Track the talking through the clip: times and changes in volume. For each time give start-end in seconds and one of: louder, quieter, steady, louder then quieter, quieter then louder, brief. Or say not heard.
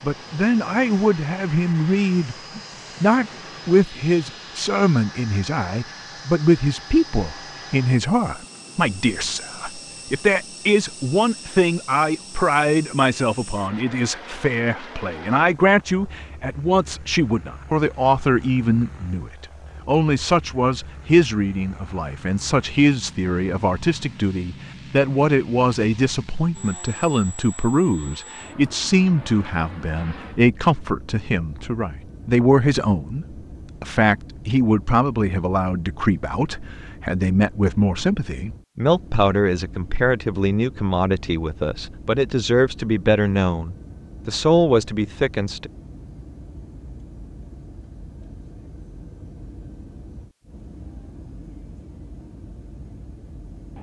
0.0-45.7 steady.